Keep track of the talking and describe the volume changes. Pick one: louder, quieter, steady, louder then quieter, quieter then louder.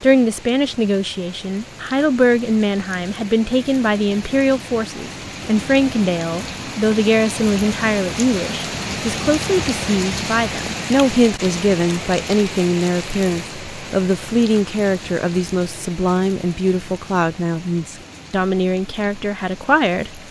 steady.